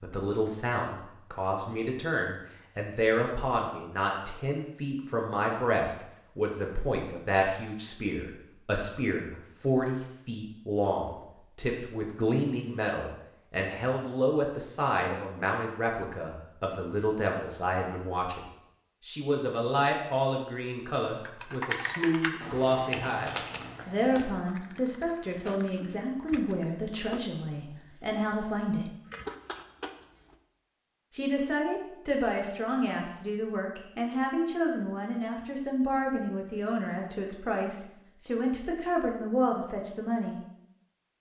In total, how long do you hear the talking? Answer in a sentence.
You can hear the talking for 38 seconds altogether.